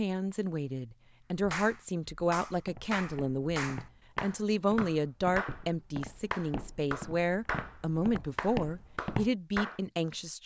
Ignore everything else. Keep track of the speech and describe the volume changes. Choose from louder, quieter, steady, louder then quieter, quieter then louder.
steady.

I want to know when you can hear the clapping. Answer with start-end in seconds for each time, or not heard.
1.2-9.8.